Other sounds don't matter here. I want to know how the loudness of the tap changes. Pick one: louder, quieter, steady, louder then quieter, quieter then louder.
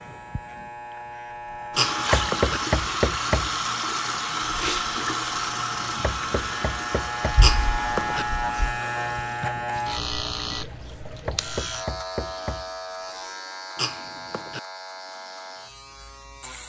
quieter.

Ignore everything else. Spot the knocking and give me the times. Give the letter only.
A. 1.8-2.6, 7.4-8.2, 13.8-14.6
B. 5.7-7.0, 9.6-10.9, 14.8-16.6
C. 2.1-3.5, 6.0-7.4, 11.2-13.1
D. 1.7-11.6
C.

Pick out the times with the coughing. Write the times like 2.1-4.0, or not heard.
1.8-2.6, 7.4-8.2, 13.8-14.6.